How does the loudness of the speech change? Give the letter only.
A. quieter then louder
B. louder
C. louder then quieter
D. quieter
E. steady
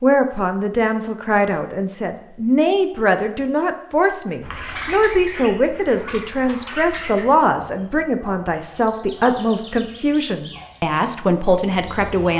E.